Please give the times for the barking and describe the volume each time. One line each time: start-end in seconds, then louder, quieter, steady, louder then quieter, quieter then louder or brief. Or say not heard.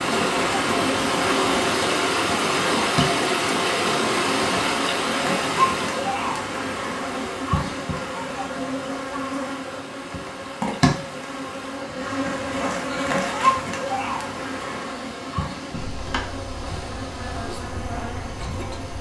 not heard.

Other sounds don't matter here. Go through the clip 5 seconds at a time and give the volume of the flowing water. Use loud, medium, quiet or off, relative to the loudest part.
loud, medium, quiet, quiet.